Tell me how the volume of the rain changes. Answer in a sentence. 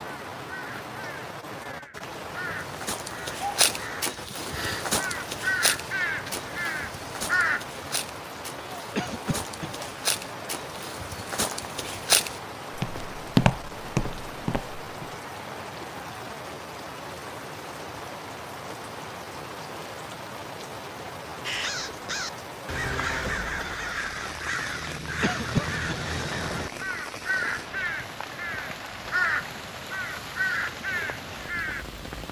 The loudness of the rain stays about the same.